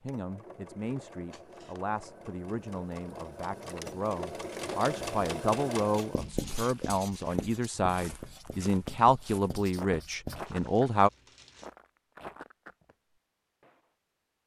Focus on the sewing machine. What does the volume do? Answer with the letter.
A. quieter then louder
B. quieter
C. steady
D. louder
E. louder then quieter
D.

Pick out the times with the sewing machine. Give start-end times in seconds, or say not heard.
0.0-6.3.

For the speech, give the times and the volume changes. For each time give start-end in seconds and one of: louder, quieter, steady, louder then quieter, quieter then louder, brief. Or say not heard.
0.0-11.1 louder.